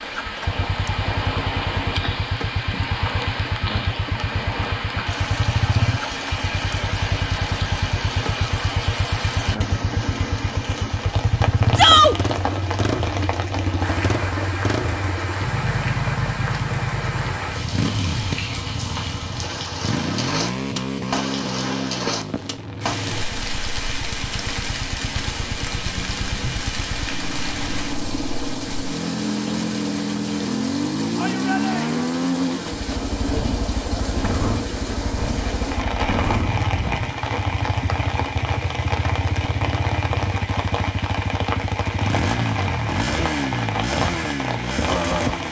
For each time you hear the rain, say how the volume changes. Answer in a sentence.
The rain can be heard from 0.0 to 45.4 s, at a steady volume.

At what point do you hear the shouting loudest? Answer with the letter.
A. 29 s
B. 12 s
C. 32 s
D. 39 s
B.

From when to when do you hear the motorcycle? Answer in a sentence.
You can hear the motorcycle from 0.0 to 45.4 s.